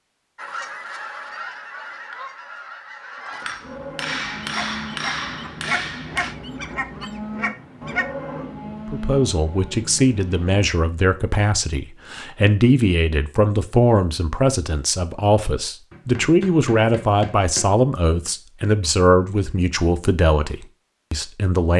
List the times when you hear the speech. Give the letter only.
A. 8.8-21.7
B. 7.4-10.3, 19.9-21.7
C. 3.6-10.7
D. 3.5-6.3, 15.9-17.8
A.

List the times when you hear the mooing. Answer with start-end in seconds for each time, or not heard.
3.6-10.7.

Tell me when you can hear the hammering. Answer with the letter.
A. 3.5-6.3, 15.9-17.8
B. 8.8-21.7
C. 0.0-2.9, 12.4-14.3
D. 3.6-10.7
A.